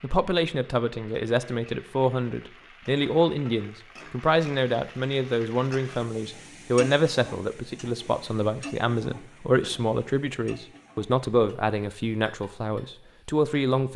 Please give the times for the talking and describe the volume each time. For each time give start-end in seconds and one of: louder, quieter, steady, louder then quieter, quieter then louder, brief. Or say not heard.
0.0-13.9 steady.